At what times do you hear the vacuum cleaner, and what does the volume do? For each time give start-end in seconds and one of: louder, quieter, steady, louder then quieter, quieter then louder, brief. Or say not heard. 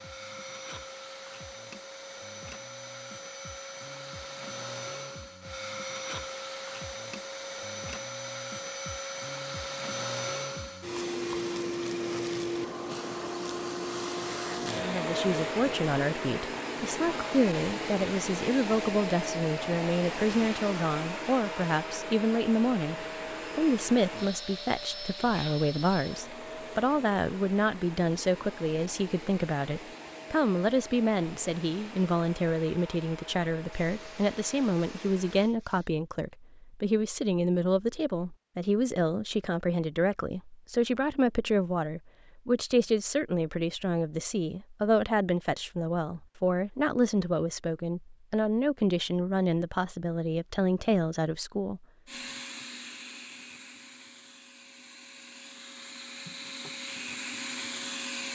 0.0-35.5 louder then quieter
52.0-58.2 quieter then louder.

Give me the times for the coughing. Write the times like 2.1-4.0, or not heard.
not heard.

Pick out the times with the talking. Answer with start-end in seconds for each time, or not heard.
14.7-51.9.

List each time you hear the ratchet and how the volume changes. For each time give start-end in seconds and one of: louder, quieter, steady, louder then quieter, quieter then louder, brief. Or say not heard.
not heard.